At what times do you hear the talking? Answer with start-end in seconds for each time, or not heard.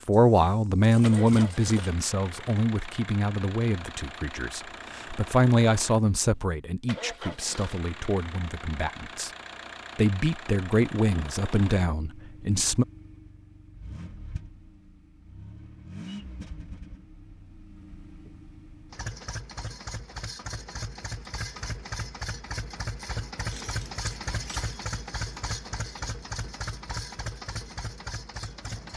0.1-9.3, 9.9-12.8.